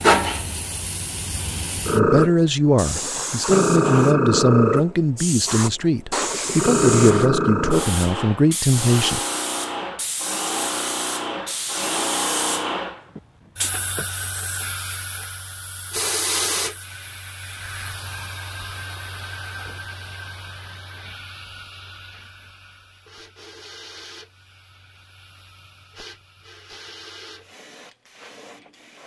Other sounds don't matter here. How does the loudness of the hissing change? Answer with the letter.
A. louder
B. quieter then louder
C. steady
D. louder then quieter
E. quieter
E.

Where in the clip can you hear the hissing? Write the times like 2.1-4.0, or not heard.
0.0-29.0.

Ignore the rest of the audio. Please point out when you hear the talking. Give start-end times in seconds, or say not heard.
1.9-9.2.